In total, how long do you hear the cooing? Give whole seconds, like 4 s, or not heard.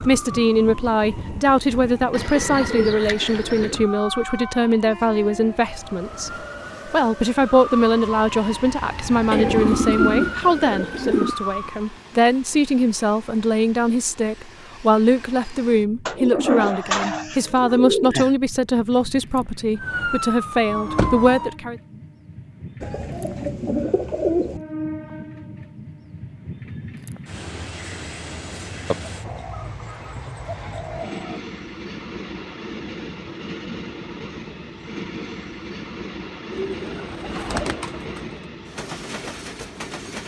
12 s.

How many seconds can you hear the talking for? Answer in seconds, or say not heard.
22 s.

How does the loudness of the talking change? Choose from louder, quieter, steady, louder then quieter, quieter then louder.
steady.